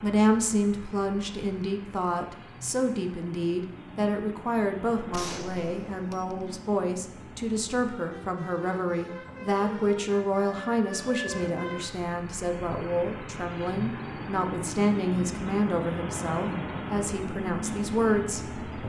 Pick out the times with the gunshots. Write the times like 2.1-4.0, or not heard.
5.1-6.4.